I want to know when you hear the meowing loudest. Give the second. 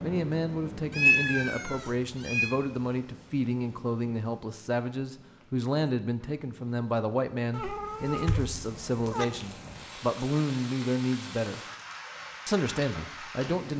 1 s.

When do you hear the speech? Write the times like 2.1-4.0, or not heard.
0.0-11.6, 12.4-13.7.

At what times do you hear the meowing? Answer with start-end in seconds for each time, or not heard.
0.9-2.5, 7.5-9.2.